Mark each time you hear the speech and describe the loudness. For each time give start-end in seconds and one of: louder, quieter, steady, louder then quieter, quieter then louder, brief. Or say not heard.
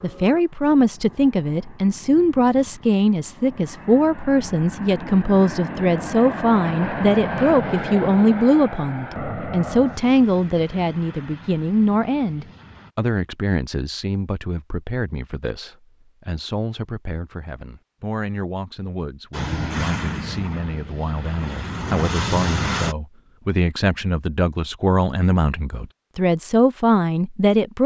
0.0-27.8 quieter then louder.